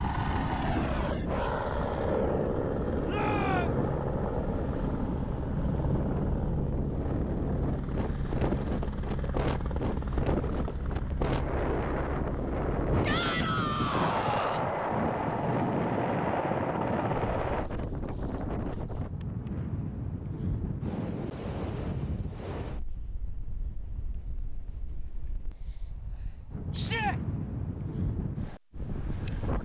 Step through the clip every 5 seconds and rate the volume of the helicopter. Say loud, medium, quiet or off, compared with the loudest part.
loud, loud, loud, loud, off, off.